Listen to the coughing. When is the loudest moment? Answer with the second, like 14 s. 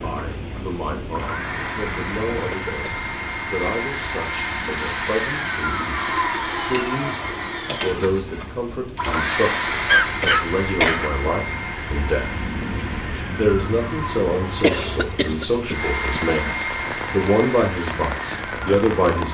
10 s.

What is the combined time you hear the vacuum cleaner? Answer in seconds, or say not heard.
19 s.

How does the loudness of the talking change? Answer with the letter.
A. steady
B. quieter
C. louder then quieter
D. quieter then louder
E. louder
E.